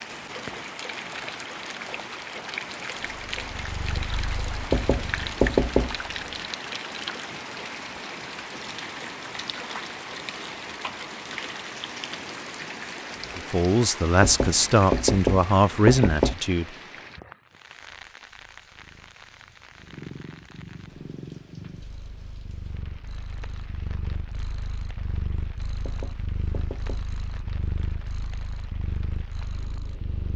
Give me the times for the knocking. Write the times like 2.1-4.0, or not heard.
4.7-6.0, 14.2-16.4, 25.9-27.1.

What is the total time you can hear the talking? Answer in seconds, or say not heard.
3 s.